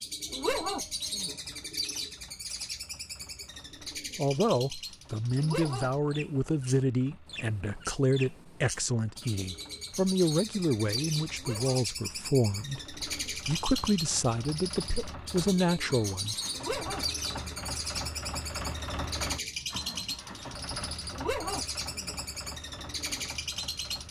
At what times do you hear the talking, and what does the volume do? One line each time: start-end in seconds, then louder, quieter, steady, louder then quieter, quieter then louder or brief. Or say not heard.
4.2-16.4 steady.